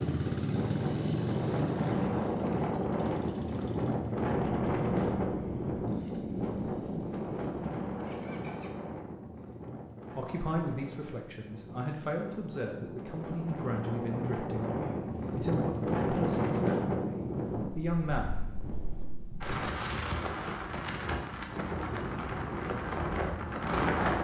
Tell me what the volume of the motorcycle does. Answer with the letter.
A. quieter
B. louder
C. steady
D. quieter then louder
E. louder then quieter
A.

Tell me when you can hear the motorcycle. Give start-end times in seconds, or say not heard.
0.0-8.8.